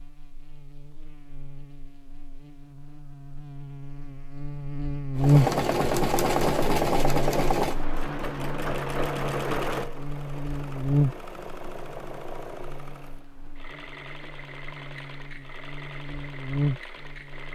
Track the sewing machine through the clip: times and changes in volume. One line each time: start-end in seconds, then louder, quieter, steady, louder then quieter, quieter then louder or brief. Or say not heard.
5.2-17.5 quieter.